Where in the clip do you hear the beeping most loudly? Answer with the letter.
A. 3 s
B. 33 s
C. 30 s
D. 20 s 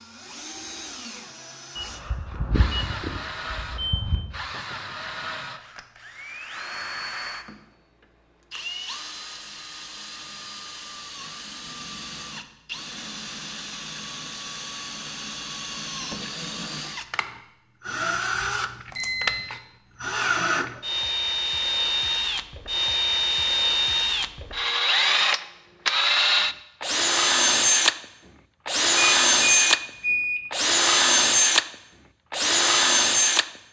C.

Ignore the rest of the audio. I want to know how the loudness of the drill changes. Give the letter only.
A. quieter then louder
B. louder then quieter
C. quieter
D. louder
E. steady
D.